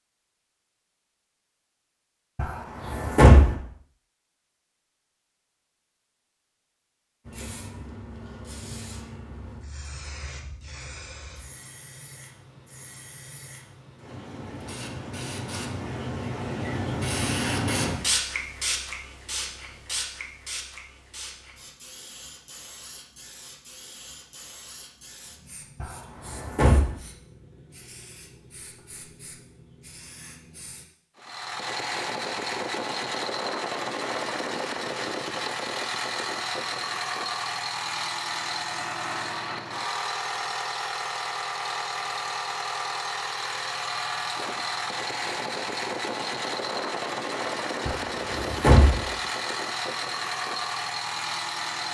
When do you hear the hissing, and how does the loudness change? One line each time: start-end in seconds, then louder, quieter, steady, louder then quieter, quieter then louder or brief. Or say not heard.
7.2-30.9 louder then quieter.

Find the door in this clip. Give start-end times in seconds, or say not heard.
2.4-3.5, 25.8-26.9, 47.9-49.0.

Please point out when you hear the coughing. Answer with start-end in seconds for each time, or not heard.
not heard.